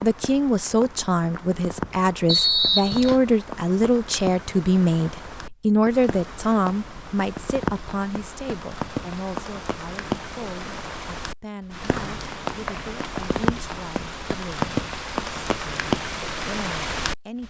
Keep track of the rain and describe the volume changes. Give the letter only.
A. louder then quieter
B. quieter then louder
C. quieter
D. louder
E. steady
D.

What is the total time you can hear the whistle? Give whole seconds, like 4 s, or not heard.
2 s.